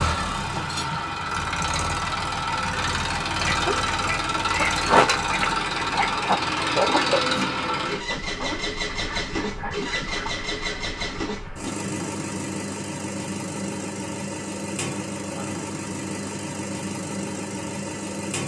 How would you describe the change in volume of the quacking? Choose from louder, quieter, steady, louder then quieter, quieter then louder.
quieter.